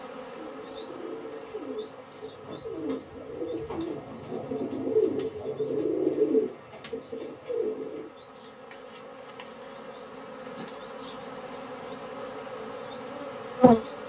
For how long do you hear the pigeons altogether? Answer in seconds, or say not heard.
8 s.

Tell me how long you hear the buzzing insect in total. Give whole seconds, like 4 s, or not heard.
14 s.